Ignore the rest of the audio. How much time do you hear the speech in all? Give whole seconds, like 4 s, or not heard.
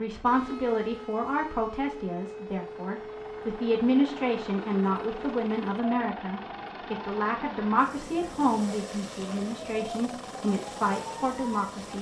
12 s.